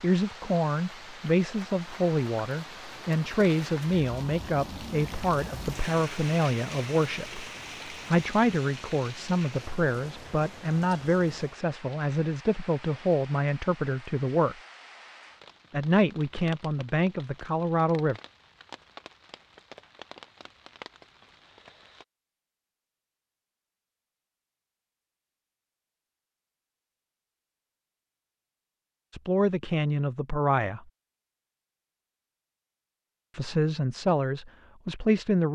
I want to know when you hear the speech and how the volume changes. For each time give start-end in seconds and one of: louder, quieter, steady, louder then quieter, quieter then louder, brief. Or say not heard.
0.0-14.6 steady
15.7-18.2 brief
29.1-30.9 brief
33.4-35.4 brief.